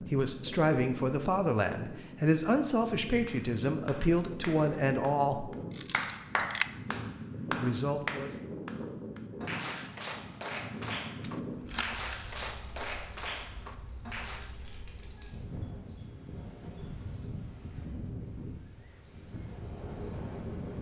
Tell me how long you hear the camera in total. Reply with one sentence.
You can hear the camera for 2 seconds altogether.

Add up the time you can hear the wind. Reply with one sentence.
You can hear the wind for 21 seconds altogether.